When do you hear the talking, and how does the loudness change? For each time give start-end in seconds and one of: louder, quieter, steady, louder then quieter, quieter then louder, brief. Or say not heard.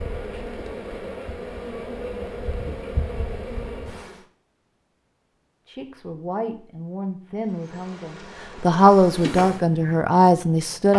5.7-10.9 louder.